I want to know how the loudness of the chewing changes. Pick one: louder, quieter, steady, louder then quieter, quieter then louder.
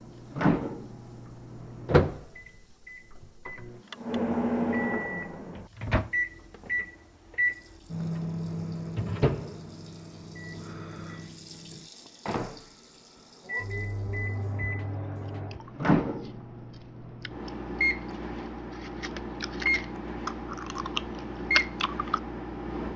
louder.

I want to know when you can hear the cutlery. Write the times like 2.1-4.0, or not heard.
not heard.